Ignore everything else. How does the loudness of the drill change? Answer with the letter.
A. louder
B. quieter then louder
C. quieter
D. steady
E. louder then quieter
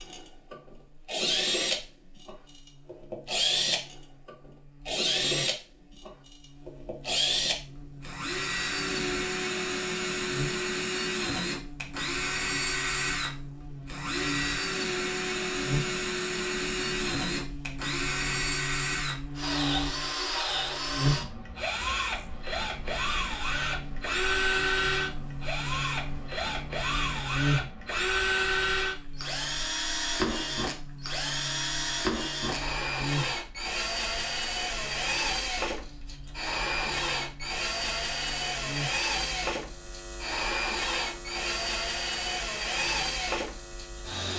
D.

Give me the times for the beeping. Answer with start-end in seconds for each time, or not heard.
not heard.